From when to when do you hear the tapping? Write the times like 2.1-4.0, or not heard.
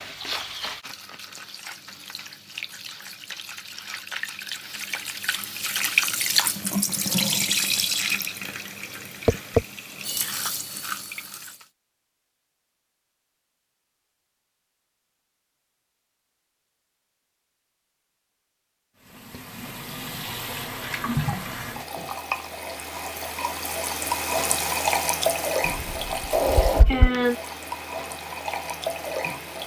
9.2-9.7, 25.7-27.1.